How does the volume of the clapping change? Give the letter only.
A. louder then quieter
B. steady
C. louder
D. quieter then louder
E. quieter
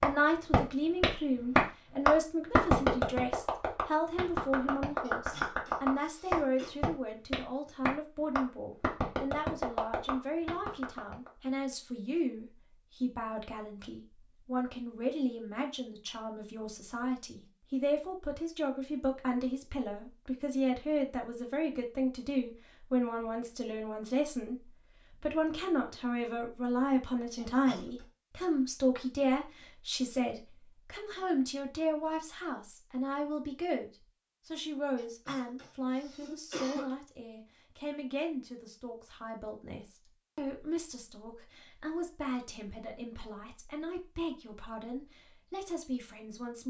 E.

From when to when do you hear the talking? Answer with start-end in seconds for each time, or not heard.
0.0-46.6.